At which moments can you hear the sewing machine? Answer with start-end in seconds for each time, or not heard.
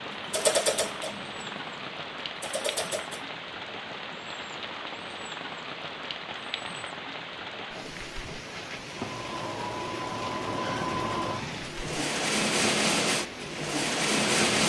0.0-3.2, 8.8-14.6.